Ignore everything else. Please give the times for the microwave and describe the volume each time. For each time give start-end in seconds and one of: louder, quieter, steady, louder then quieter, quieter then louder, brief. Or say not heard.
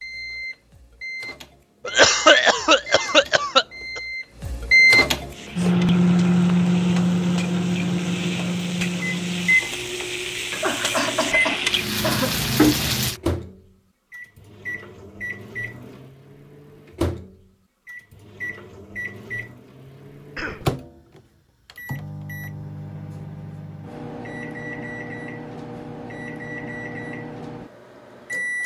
0.0-28.6 quieter.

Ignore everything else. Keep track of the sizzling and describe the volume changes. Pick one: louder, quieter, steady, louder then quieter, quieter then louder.
louder.